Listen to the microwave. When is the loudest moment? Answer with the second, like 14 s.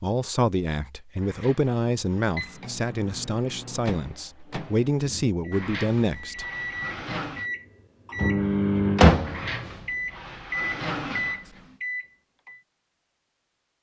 9 s.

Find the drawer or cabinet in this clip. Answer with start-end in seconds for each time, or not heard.
1.2-2.4, 5.5-7.5, 9.2-11.8.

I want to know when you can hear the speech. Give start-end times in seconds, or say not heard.
0.0-6.5.